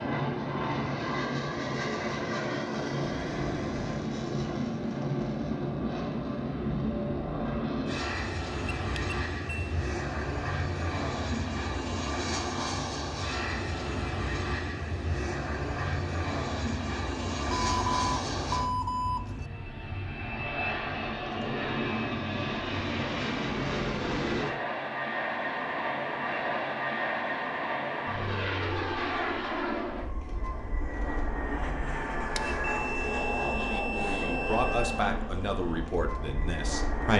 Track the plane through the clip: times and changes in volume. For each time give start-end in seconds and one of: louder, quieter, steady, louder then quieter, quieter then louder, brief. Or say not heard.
0.0-37.1 steady.